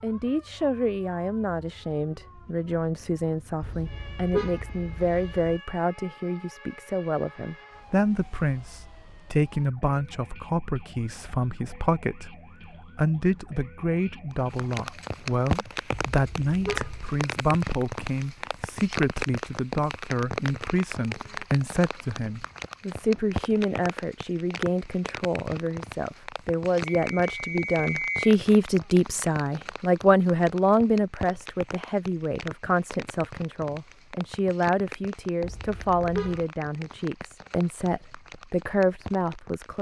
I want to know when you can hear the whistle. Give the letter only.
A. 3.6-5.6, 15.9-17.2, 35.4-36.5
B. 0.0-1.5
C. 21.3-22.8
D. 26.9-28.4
D.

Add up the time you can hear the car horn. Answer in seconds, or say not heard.
4 s.